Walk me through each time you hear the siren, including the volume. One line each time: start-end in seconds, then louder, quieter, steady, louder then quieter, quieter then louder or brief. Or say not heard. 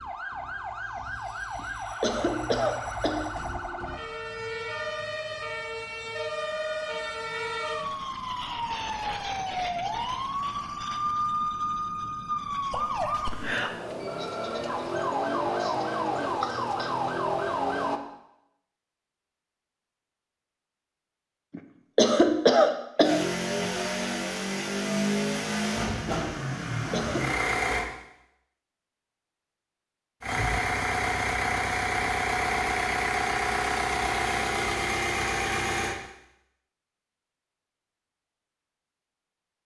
0.0-18.0 louder.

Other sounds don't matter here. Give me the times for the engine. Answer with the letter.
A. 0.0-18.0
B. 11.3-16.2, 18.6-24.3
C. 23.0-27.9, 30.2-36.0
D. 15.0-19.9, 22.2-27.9
C.